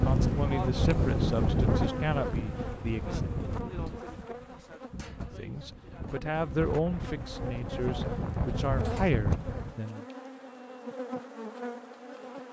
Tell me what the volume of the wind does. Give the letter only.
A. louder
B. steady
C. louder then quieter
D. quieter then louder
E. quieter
D.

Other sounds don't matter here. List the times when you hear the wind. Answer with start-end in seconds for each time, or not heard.
0.0-9.8.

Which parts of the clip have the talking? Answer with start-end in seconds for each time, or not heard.
0.0-3.2, 5.3-10.1.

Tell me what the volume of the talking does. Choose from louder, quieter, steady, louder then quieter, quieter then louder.
steady.